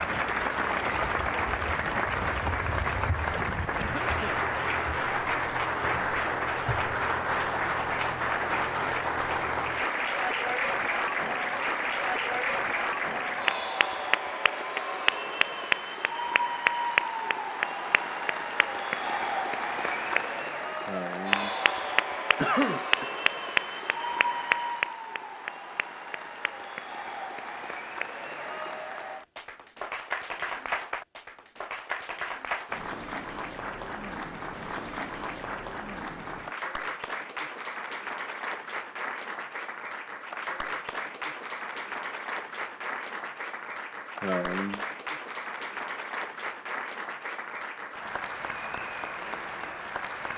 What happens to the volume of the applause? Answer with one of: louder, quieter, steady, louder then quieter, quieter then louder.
quieter.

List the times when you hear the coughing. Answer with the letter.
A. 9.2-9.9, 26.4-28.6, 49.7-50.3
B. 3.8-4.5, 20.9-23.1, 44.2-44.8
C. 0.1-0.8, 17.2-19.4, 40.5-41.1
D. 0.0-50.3
B.